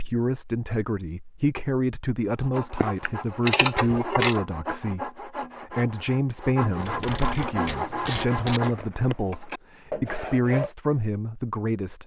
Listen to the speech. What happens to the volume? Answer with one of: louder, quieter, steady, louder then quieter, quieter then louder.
steady.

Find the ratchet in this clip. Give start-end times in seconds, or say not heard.
2.8-4.4, 6.8-8.6.